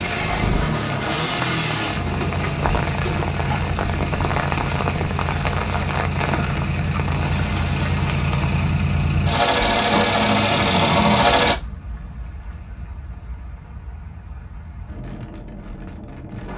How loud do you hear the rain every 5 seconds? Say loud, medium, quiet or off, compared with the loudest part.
loud, loud, quiet, medium.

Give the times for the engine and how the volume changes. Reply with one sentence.
You can hear the engine from 0.0 to 11.6 s, getting louder.